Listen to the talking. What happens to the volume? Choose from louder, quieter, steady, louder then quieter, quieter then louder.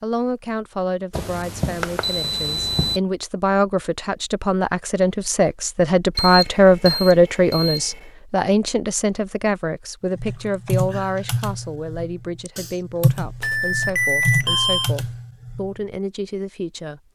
louder then quieter.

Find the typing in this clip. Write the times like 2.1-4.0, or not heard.
10.2-15.8.